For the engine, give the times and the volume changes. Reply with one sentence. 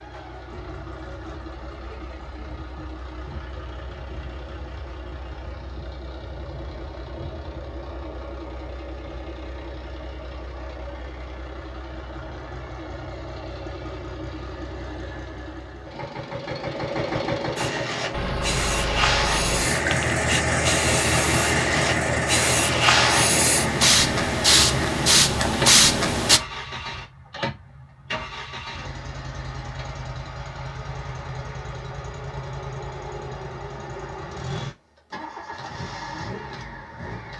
The engine can be heard from 0.0 to 37.3 s, getting louder then quieter.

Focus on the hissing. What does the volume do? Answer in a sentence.
The loudness of the hissing goes up.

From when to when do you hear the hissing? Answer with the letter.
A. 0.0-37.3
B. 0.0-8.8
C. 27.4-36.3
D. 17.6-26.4
D.